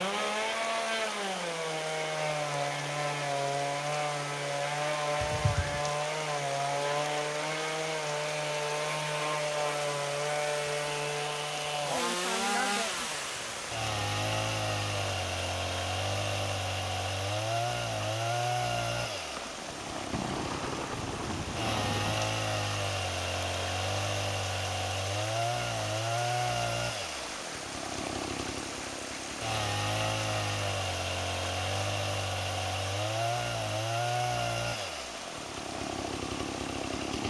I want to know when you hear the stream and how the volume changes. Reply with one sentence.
The stream can be heard from 0.0 to 37.2 s, at a steady volume.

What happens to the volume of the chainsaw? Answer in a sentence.
The volume of the chainsaw stays about the same.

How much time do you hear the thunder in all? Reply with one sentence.
The thunder can be heard for 3 seconds in total.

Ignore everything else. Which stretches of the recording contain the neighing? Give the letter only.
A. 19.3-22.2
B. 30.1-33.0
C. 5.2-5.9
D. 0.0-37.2
C.